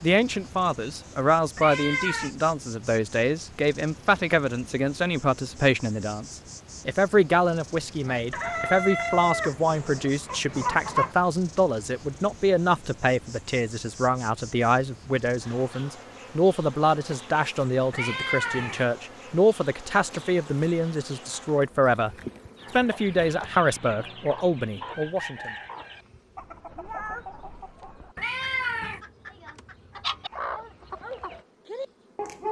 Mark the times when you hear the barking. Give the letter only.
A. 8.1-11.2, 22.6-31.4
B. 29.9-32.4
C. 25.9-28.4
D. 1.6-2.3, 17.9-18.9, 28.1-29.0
B.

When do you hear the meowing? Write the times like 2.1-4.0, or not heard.
1.6-2.3, 17.9-18.9, 28.1-29.0.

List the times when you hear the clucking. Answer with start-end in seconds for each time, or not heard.
8.1-11.2, 22.6-31.4.